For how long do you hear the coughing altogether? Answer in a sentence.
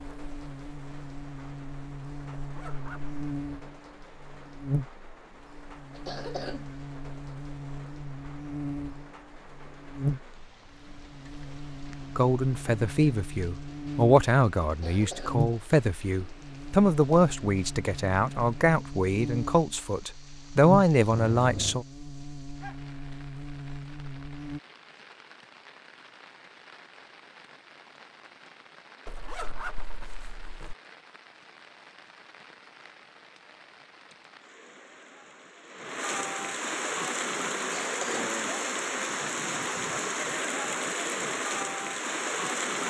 You can hear the coughing for 2 seconds altogether.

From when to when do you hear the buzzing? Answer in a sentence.
The buzzing can be heard from 0.0 to 24.6 s.